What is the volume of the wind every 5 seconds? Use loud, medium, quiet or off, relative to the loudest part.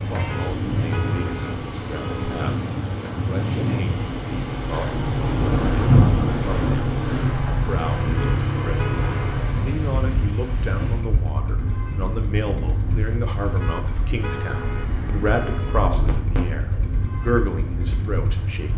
medium, loud, medium, medium.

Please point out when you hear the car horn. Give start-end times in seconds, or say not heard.
0.1-2.5, 8.0-9.4, 13.3-15.9.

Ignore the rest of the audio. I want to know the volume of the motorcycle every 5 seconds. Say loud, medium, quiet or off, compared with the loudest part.
loud, loud, medium, medium.